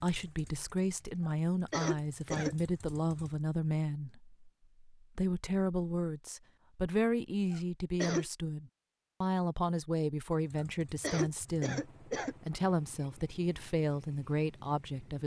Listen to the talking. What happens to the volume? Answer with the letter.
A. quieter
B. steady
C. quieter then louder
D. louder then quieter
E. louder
B.